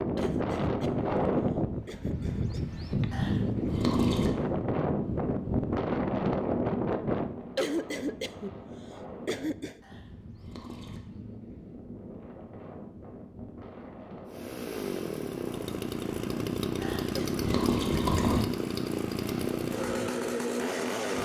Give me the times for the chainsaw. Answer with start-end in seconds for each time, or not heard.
14.3-21.1.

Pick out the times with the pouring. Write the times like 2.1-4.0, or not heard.
3.1-4.3, 9.8-11.0, 16.8-18.4.